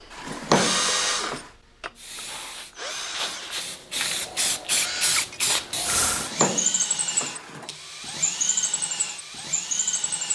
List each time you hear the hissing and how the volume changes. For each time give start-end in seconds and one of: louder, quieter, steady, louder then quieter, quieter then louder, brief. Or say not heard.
1.9-6.3 louder.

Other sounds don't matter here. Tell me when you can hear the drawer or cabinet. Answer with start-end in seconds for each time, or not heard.
0.1-1.4, 6.0-7.7.